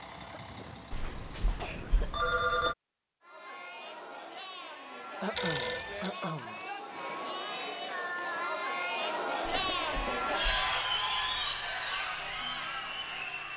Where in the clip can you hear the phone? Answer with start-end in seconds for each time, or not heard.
0.9-2.8, 5.3-6.2, 9.6-10.8.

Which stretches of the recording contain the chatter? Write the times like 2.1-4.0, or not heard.
3.2-13.5.